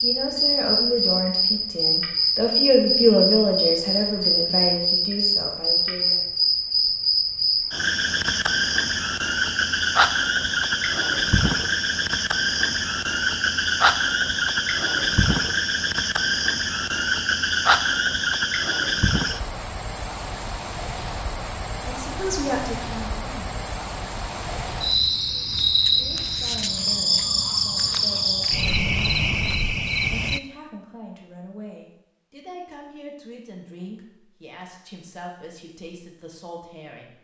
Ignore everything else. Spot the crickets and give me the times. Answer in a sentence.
The crickets can be heard from 0.0 to 30.4 s.